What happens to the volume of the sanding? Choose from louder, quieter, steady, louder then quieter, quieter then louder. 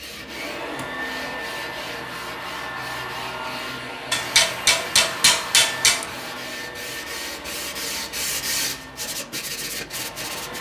louder.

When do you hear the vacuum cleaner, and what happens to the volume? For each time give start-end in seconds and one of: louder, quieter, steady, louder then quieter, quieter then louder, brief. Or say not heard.
0.0-10.5 quieter.